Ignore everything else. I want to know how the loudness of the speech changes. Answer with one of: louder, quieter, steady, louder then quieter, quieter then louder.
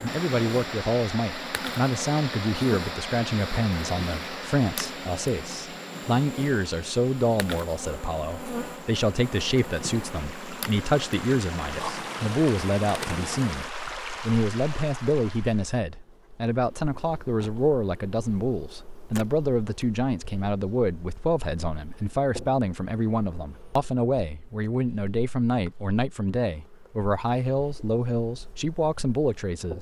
steady.